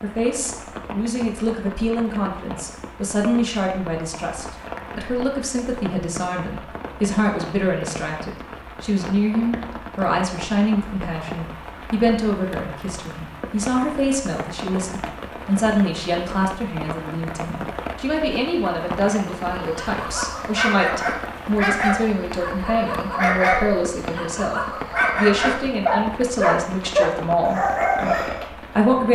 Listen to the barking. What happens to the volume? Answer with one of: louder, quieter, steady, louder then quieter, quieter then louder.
louder.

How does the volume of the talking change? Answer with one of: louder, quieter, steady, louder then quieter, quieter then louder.
steady.